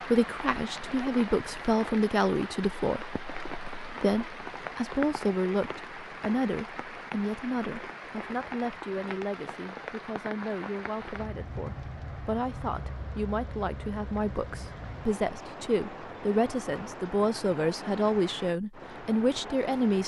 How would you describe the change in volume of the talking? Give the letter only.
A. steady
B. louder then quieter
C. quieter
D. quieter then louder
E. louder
D.